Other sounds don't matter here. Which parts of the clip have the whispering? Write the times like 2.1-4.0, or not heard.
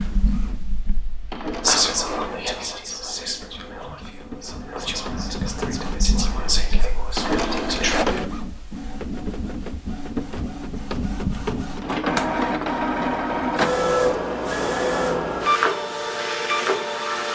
1.6-8.1.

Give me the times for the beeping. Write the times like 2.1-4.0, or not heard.
not heard.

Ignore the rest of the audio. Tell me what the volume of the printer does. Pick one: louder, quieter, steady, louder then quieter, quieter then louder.
louder.